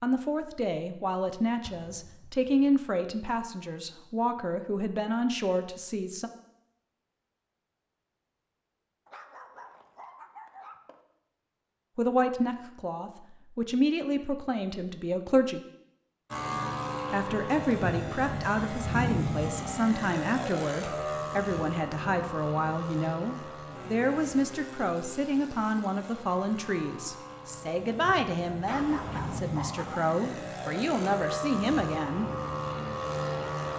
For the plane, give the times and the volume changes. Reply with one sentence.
The plane can be heard from 16.3 to 33.7 s, getting quieter then louder.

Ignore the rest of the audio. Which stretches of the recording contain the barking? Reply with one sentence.
You can hear the barking from 9.1 to 11.0 s and from 28.6 to 30.0 s.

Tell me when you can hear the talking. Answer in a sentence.
The talking can be heard from 0.0 to 6.3 s, from 11.9 to 15.6 s and from 17.1 to 32.3 s.